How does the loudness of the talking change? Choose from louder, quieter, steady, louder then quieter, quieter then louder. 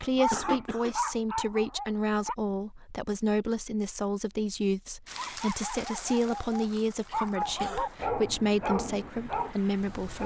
steady.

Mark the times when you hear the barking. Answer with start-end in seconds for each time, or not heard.
0.0-2.4, 5.2-10.2.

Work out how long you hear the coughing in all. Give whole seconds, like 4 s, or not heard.
2 s.